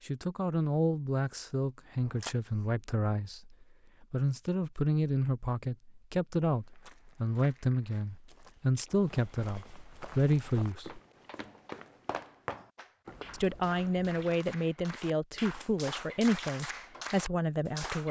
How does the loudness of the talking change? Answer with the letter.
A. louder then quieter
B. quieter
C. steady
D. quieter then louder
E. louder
C.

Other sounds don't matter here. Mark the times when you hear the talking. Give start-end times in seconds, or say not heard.
0.0-11.0, 13.3-18.0.